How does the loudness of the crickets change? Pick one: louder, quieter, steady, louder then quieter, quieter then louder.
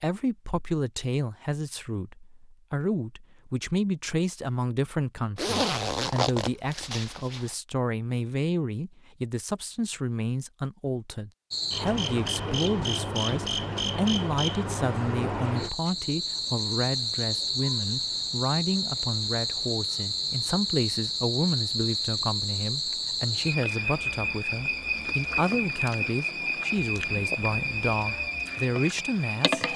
steady.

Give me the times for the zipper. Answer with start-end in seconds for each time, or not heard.
5.3-7.5.